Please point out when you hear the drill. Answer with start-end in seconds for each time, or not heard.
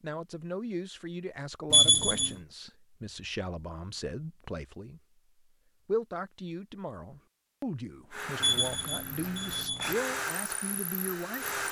8.1-11.6.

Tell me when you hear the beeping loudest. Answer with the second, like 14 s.
2 s.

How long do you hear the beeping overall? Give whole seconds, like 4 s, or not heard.
2 s.